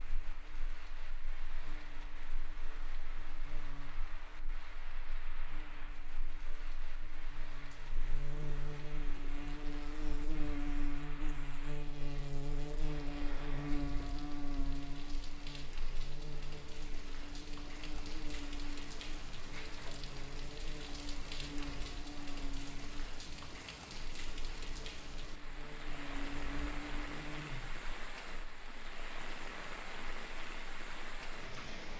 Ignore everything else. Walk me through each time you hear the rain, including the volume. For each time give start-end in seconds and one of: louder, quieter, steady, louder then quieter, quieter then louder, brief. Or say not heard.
0.0-31.9 louder.